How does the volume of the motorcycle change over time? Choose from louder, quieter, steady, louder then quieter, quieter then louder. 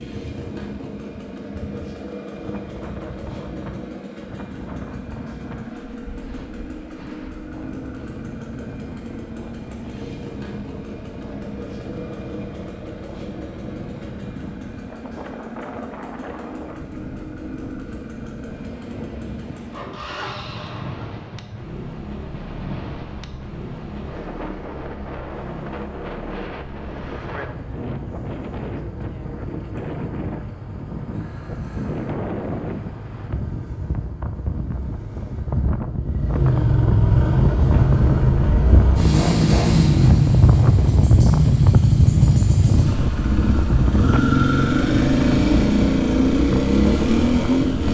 louder.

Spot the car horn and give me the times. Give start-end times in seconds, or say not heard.
not heard.